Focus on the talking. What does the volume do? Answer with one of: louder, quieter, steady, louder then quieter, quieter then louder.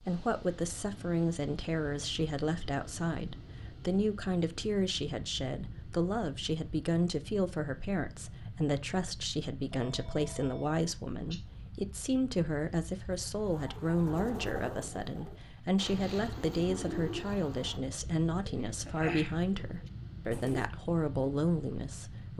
steady.